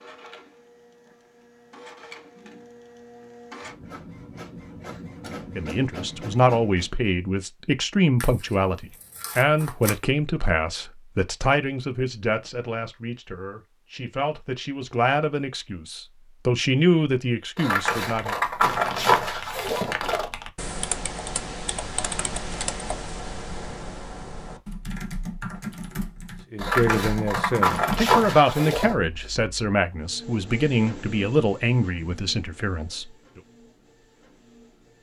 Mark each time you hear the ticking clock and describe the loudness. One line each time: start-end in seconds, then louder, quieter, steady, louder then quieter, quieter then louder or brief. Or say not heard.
not heard.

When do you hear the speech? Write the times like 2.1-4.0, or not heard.
5.5-18.4, 26.5-33.1.